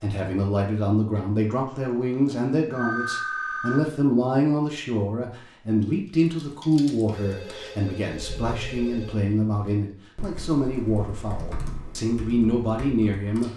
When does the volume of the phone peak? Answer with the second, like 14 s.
3 s.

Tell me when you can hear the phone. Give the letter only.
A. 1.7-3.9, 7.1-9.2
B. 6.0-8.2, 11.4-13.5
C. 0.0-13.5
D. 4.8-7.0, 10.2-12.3
A.